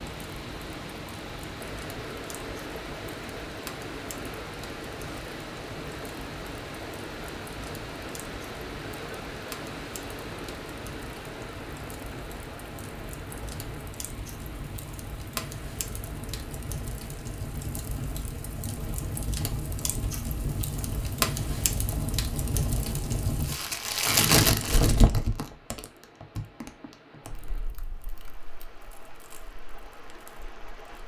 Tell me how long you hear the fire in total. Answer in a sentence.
You can hear the fire for 31 seconds altogether.